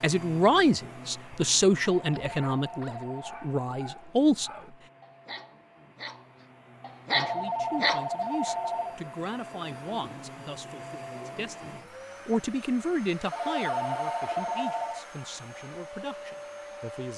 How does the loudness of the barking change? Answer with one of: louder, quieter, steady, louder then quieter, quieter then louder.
louder.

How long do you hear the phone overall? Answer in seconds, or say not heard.
5 s.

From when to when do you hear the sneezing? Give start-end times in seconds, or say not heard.
not heard.